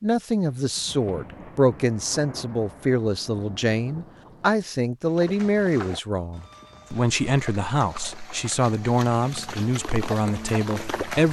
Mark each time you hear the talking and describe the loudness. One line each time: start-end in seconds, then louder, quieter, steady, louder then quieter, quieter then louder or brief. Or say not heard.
0.0-11.2 steady.